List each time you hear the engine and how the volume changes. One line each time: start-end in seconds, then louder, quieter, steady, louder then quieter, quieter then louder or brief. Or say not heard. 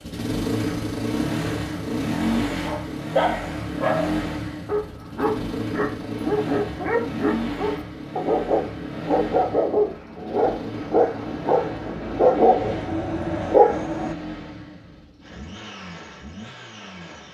0.0-17.2 quieter.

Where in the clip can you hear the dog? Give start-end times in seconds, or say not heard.
2.6-14.2.